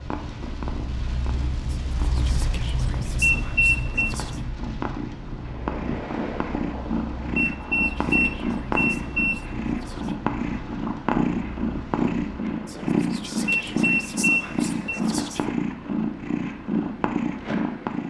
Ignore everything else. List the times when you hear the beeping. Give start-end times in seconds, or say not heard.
3.2-4.2, 7.3-9.4, 13.4-15.0.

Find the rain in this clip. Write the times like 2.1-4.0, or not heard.
0.0-12.3.